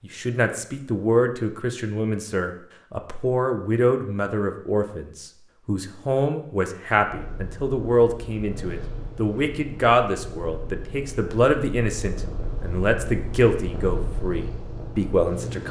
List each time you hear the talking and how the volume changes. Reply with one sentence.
The talking can be heard from 0.0 to 15.6 s, at a steady volume.